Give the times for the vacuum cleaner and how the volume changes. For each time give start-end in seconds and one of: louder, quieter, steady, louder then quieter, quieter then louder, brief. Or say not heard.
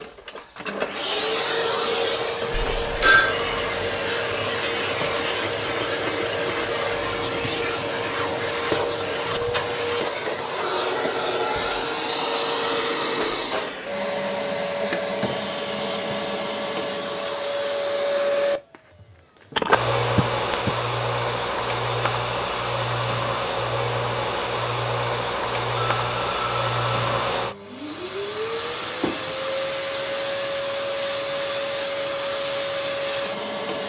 0.0-33.8 steady.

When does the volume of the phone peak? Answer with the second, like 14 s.
3 s.